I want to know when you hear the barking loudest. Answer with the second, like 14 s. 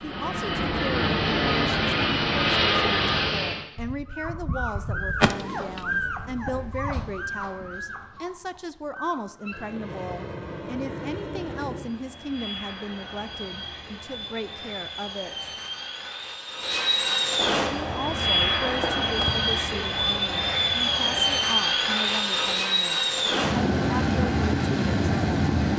6 s.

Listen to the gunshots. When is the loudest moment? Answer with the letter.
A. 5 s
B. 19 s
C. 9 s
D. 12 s
A.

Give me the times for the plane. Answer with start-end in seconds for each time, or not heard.
0.0-3.6, 9.4-25.7.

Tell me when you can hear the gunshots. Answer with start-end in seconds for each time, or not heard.
3.8-7.2, 17.4-19.4.